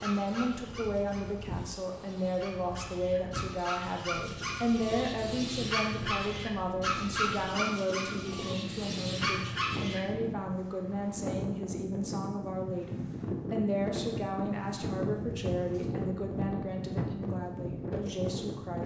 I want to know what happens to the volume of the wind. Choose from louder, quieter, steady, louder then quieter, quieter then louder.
louder.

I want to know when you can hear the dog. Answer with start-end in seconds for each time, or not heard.
0.0-10.0.